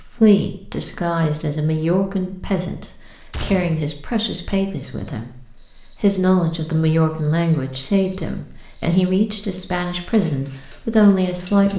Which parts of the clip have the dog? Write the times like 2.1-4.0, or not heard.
not heard.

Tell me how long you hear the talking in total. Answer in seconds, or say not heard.
12 s.